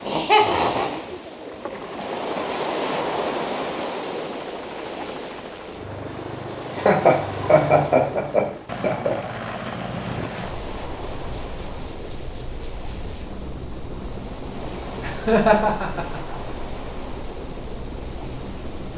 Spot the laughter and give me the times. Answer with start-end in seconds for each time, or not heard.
0.1-1.0, 6.8-9.2, 15.0-16.4.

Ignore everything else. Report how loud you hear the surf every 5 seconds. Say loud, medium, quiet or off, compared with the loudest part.
loud, medium, medium, medium.